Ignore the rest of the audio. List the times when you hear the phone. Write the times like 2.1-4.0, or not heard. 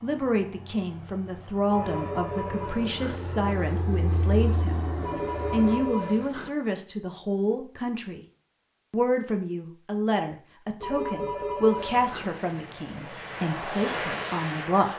1.6-3.2, 5.0-6.5, 10.8-12.3.